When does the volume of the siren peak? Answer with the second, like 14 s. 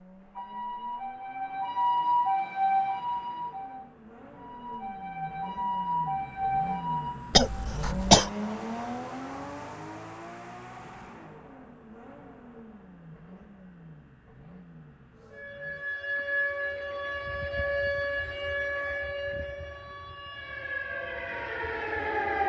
2 s.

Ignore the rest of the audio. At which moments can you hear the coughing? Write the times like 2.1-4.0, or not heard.
7.3-8.3.